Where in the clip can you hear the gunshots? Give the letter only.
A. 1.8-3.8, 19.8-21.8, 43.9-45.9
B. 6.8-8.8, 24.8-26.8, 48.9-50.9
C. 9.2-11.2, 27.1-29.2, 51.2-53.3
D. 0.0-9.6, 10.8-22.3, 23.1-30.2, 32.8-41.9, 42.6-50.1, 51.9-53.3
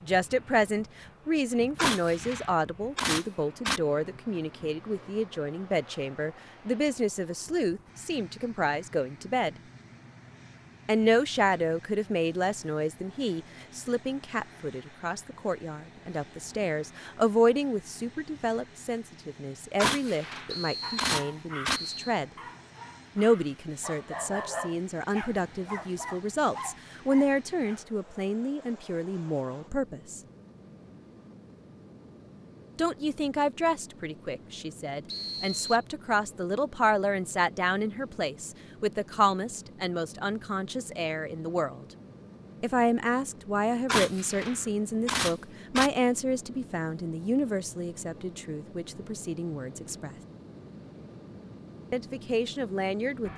A.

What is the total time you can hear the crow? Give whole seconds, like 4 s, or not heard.
not heard.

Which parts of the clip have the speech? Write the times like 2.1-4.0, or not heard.
0.0-9.6, 10.8-22.3, 23.1-30.2, 32.8-41.9, 42.6-50.1, 51.9-53.3.